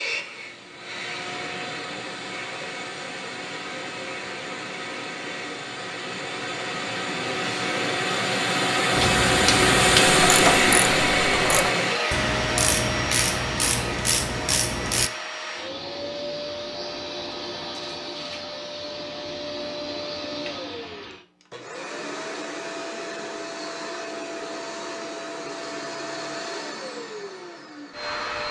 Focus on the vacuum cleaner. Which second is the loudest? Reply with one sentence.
The volume of the vacuum cleaner peaks at 10 seconds.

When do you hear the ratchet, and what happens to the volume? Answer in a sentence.
You can hear the ratchet from 8.9 to 15.1 s, at a steady volume.